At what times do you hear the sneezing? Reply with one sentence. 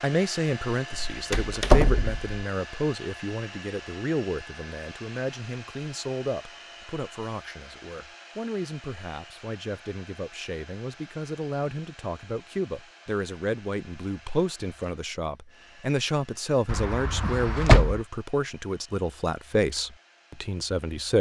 The sneezing can't be heard in this clip.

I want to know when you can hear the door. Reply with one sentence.
You can hear the door from 0.9 to 2.2 s and from 16.6 to 18.0 s.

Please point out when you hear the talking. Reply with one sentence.
You can hear the talking from 0.0 to 21.1 s.